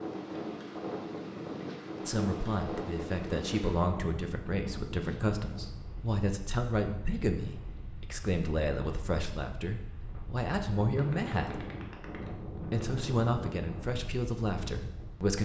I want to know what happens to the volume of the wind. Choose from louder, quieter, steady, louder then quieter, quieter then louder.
quieter then louder.